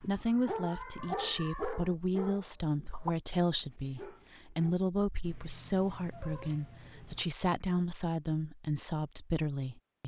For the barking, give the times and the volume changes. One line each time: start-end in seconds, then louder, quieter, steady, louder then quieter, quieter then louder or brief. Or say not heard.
0.0-4.8 quieter.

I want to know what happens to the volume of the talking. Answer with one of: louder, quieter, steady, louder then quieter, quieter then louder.
steady.